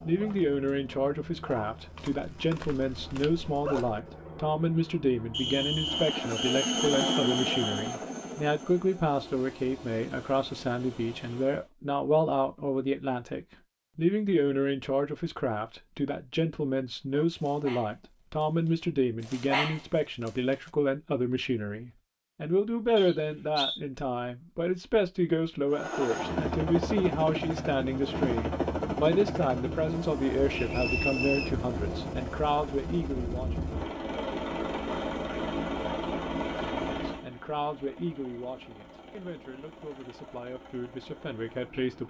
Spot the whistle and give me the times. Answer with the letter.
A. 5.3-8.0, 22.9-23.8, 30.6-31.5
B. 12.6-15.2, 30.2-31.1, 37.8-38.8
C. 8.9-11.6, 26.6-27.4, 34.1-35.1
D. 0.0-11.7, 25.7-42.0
A.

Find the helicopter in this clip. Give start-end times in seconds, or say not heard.
0.0-11.7, 25.7-42.0.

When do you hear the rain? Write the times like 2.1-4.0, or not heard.
not heard.